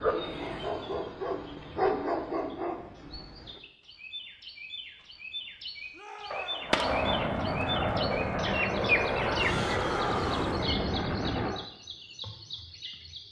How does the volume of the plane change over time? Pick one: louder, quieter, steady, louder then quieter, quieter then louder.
steady.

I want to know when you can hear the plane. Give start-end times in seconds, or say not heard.
6.6-11.7.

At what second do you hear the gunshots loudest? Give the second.
7 s.